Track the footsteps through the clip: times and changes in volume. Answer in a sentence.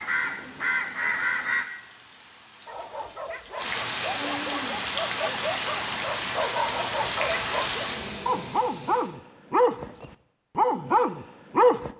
You can't hear the footsteps here.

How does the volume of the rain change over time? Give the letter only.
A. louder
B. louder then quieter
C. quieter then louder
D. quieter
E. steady
A.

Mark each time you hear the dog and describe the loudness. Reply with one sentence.
The dog can be heard from 2.6 to 11.9 s, getting louder.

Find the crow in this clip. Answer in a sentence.
You can hear the crow from 0.0 to 1.6 s.